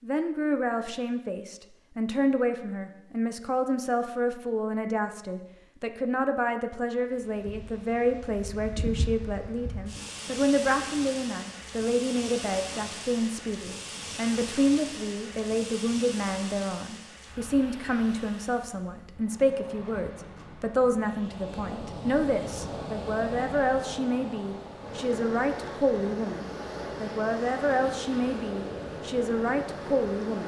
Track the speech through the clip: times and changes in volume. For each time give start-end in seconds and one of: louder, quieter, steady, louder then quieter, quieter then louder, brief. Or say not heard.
0.0-30.4 steady.